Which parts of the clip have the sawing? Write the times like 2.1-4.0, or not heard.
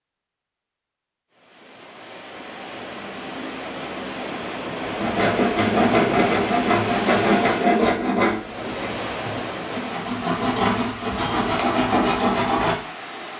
4.8-12.8.